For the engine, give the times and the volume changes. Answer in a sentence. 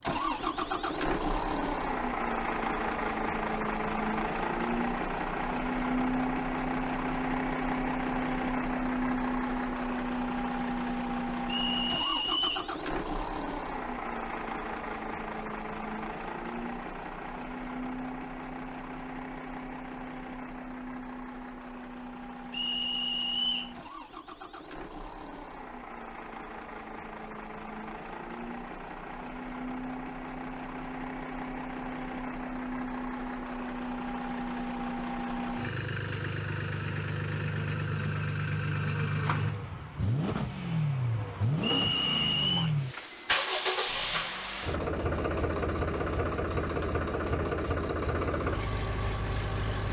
The engine can be heard from 0.0 to 49.8 s, getting quieter then louder.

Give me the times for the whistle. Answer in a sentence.
You can hear the whistle from 11.4 to 12.7 s, from 22.5 to 23.8 s and from 41.6 to 42.7 s.